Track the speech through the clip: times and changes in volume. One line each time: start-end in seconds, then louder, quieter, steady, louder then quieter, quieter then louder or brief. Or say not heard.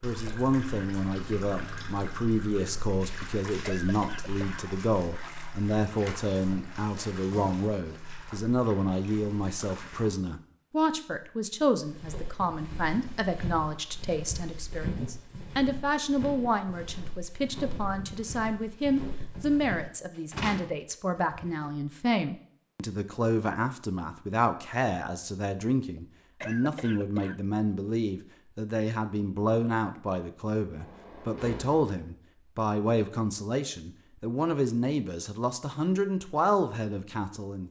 0.0-37.6 steady.